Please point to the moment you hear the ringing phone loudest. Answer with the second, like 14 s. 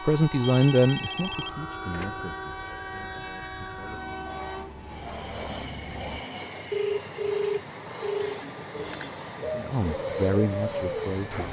7 s.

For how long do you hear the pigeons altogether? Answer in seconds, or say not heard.
3 s.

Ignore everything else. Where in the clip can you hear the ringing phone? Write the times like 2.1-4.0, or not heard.
0.5-2.2, 6.7-8.4.